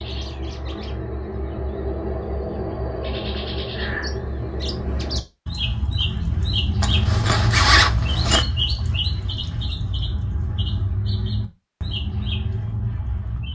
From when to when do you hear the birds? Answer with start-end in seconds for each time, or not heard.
0.0-13.5.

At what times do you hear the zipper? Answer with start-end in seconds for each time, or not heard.
6.8-8.4.